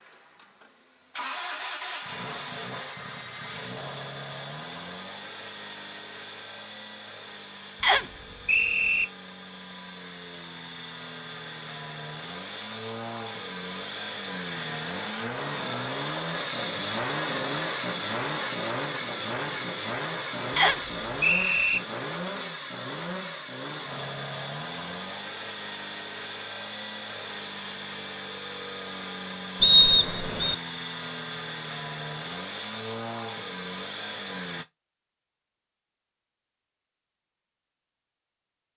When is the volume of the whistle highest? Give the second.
30 s.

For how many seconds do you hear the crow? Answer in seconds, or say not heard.
not heard.